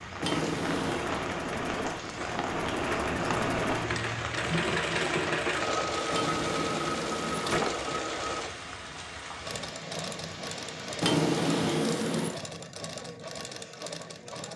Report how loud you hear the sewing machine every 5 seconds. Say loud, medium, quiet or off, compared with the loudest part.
loud, loud, medium.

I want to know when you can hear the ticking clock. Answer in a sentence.
You can't hear the ticking clock here.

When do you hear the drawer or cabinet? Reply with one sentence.
The drawer or cabinet can be heard from 0.2 to 1.1 s, from 6.1 to 8.0 s and from 11.0 to 12.4 s.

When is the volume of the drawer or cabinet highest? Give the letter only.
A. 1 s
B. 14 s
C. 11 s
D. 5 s
C.